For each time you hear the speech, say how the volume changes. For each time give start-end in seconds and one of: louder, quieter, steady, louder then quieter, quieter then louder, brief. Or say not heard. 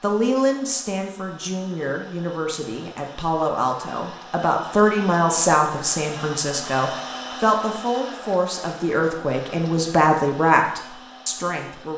0.0-11.9 louder.